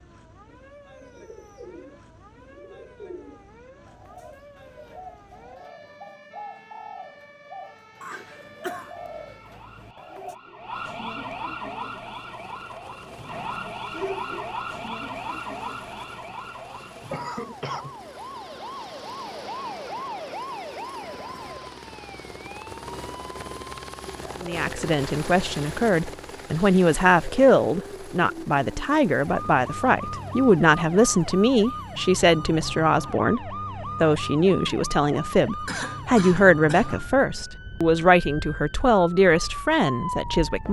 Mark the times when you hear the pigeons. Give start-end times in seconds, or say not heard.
0.5-10.3.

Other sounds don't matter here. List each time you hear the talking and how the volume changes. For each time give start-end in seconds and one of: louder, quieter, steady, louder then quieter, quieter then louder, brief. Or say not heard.
24.4-40.6 steady.